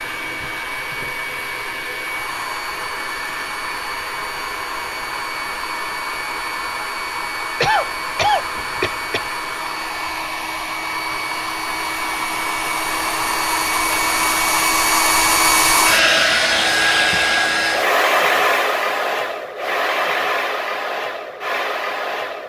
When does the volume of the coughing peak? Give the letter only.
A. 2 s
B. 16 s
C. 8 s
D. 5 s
C.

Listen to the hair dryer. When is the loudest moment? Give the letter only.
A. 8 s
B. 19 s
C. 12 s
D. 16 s
D.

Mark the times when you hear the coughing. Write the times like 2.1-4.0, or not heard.
7.6-9.2.